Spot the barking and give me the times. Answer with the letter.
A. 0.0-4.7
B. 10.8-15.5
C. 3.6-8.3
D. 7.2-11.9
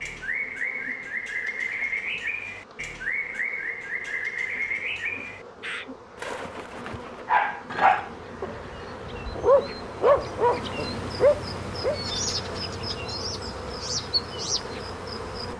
D.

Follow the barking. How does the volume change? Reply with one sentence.
The volume of the barking goes down, then up.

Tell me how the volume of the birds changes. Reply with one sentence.
The loudness of the birds goes down, then up.